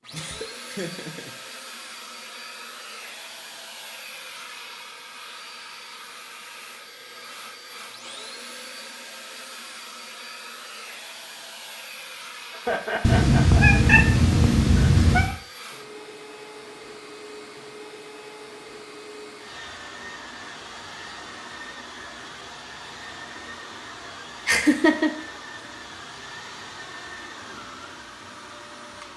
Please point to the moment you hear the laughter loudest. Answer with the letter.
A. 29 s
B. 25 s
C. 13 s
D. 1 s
B.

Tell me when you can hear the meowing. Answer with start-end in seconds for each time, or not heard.
13.0-15.3.